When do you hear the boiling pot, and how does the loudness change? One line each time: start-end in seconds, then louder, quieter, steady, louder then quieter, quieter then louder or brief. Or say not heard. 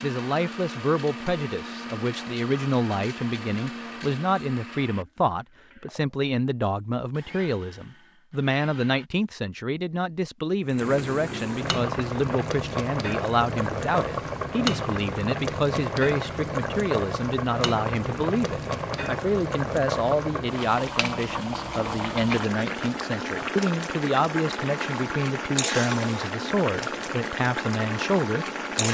10.7-28.8 steady.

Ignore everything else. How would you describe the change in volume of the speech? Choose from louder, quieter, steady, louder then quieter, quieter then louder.
steady.